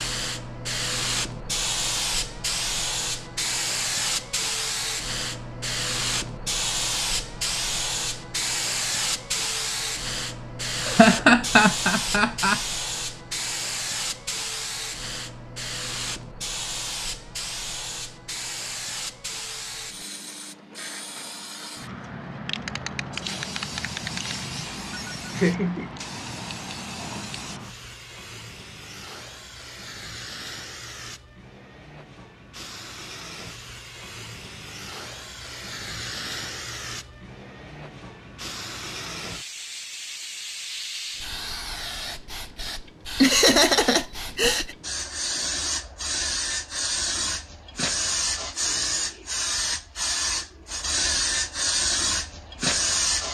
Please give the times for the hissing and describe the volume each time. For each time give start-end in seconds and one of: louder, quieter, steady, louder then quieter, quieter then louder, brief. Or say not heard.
0.0-53.2 quieter then louder.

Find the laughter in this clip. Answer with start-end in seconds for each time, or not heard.
10.8-12.6, 24.9-25.9, 43.2-44.8.